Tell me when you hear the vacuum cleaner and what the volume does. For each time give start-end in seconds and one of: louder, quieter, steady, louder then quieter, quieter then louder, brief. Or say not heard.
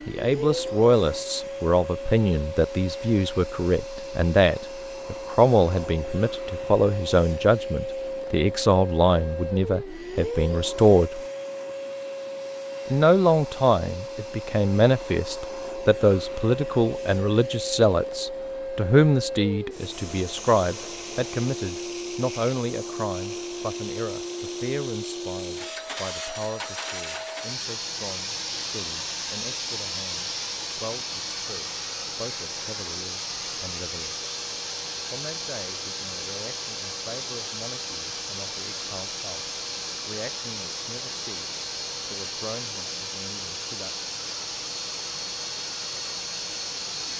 0.0-47.1 steady.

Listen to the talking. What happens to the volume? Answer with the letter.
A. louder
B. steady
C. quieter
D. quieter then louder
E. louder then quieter
C.